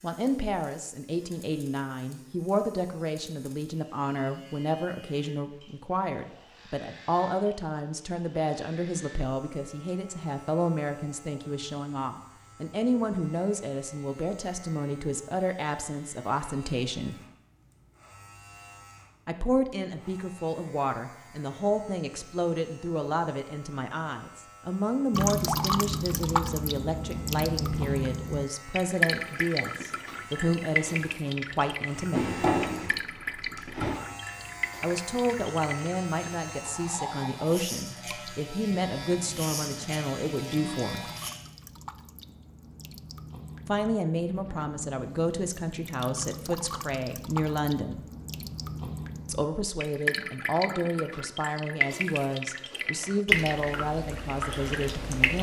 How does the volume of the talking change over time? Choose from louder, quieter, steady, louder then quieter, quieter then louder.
steady.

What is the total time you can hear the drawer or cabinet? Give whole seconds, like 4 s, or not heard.
2 s.